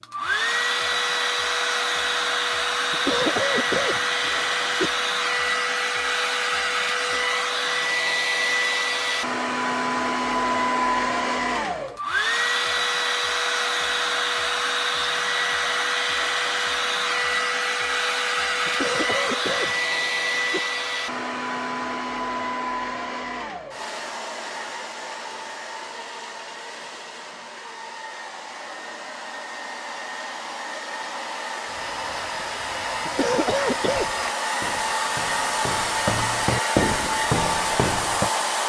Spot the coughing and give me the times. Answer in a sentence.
The coughing can be heard from 2.9 to 4.9 s, from 18.6 to 20.6 s and from 33.0 to 34.1 s.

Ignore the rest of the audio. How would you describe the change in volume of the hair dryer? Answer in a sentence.
The loudness of the hair dryer goes down, then up.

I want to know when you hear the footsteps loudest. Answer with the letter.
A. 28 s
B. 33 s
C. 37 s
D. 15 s
C.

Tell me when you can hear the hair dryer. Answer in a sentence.
The hair dryer can be heard from 0.0 to 38.6 s.